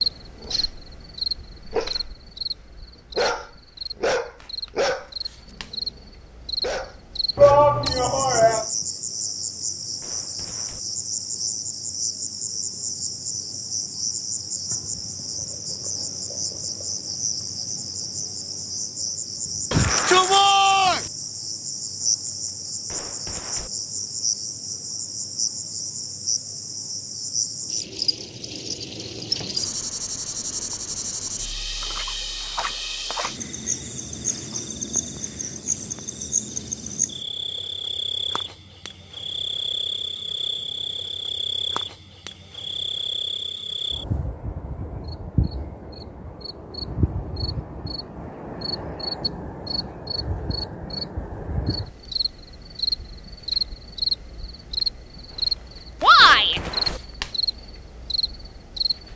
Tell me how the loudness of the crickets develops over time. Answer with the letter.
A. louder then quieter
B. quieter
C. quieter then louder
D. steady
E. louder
D.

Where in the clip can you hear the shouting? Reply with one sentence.
The shouting can be heard from 7.3 to 8.7 s, from 19.7 to 21.1 s and from 56.0 to 56.6 s.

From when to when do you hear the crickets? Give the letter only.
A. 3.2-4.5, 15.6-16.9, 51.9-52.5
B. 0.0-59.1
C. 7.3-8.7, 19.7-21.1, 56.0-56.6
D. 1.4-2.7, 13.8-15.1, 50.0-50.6
B.